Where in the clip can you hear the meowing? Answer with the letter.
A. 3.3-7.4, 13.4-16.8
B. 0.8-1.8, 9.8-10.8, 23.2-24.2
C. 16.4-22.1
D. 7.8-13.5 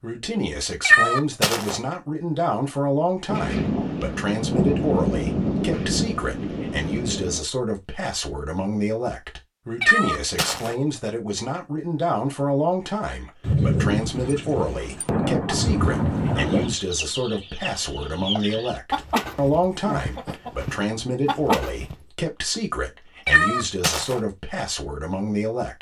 B.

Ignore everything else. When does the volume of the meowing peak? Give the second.
1 s.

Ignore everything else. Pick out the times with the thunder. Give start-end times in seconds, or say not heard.
3.3-7.4, 13.4-16.8.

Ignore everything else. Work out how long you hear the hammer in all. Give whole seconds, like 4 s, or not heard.
not heard.